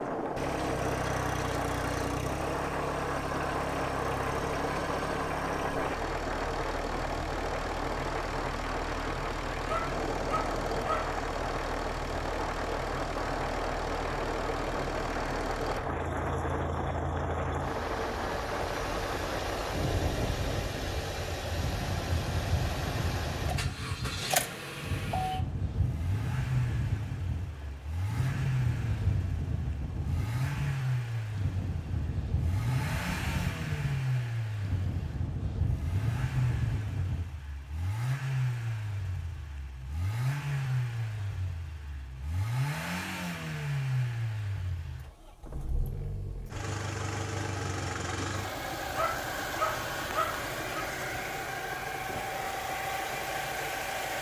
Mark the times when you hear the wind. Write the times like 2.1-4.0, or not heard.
0.0-37.3.